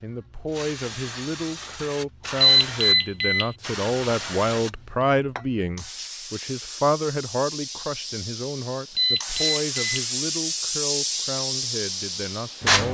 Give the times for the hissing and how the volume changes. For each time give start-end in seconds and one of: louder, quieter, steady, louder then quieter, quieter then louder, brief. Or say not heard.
0.0-12.8 louder.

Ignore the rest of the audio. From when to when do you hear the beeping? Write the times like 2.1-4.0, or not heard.
2.4-3.5, 8.9-10.1.